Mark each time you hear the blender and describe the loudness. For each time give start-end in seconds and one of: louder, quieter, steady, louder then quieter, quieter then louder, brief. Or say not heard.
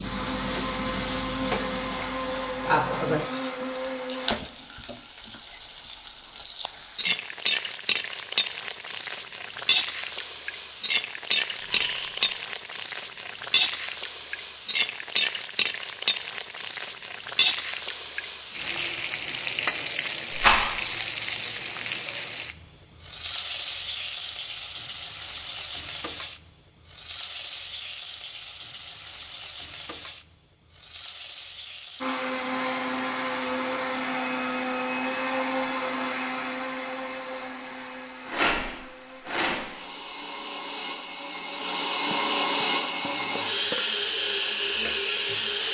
0.0-4.3 steady
32.0-45.6 quieter then louder.